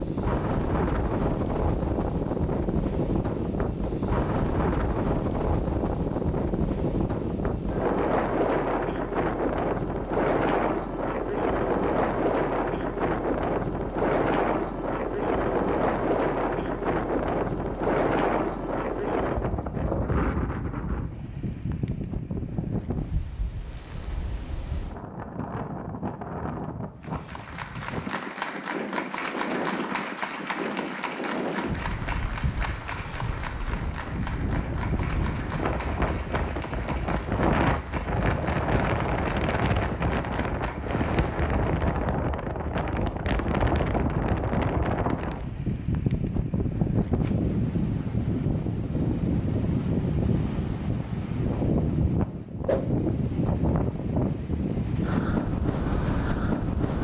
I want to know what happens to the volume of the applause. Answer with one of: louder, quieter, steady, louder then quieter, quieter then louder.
quieter.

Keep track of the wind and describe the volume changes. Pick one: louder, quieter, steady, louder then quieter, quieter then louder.
quieter then louder.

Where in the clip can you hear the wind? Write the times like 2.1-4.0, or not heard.
0.0-56.9.